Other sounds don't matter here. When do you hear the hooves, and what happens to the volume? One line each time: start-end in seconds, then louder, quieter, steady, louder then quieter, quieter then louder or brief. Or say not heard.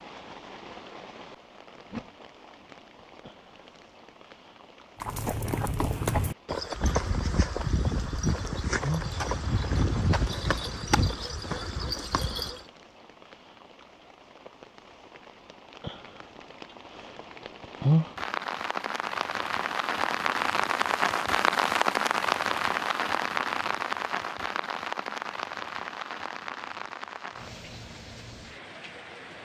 5.0-12.6 steady.